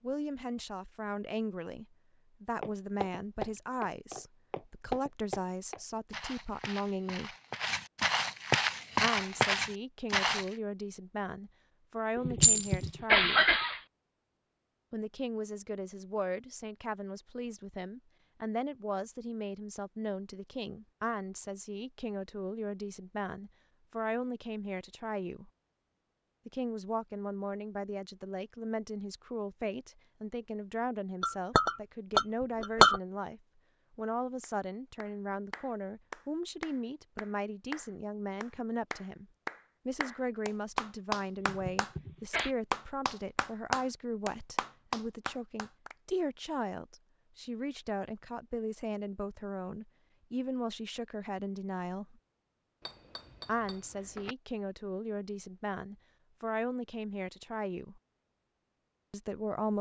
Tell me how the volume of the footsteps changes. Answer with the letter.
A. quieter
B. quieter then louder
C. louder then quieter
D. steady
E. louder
B.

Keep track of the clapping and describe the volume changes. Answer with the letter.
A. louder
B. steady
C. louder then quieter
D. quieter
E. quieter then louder
A.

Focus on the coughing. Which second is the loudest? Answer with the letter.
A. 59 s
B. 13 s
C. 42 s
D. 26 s
B.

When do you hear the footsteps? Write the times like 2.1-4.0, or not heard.
2.6-10.4.